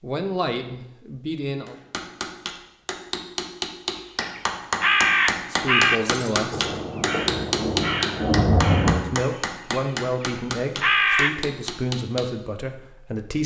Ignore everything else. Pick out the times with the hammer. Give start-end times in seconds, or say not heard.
1.6-12.3.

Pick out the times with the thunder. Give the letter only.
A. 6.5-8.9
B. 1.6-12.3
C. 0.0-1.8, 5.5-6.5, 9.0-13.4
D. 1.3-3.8
A.